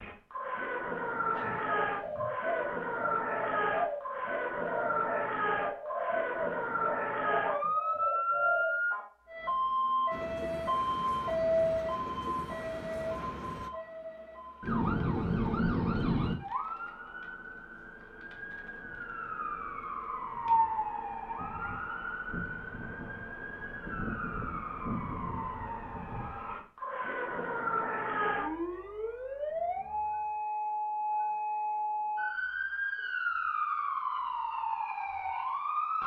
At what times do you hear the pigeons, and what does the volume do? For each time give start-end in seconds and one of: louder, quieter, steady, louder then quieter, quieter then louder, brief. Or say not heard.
1.4-8.8 steady.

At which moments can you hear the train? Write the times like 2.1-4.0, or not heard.
10.1-13.7.